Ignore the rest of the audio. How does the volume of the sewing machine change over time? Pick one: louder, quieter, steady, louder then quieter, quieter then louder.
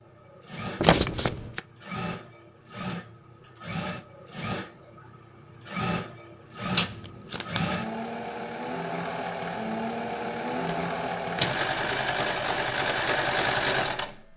louder.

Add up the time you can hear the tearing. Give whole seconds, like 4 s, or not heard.
4 s.